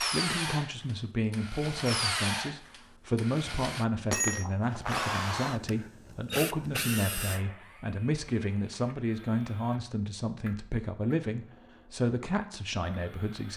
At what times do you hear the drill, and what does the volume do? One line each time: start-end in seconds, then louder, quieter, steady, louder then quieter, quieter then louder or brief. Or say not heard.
0.0-13.5 quieter.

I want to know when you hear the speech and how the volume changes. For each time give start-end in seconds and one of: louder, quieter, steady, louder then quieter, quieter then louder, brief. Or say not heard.
0.0-13.5 steady.